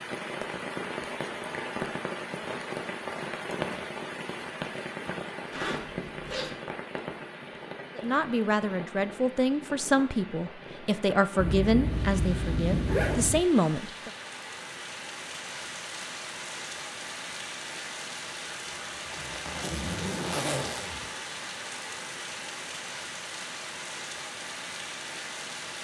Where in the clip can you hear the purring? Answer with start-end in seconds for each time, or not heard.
not heard.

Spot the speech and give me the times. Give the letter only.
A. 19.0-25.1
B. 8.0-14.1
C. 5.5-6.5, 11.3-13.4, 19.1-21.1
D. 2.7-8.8
B.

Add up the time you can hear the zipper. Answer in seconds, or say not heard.
5 s.